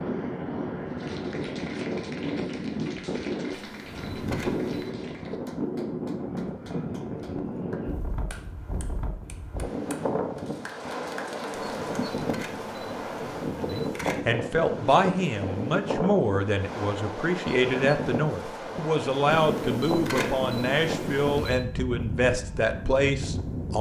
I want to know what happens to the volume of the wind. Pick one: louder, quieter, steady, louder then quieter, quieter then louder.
steady.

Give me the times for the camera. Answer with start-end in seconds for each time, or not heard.
3.5-5.0, 11.5-14.2, 19.3-21.6.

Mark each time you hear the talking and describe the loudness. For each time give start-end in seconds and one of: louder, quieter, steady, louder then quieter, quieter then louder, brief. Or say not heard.
13.6-23.7 steady.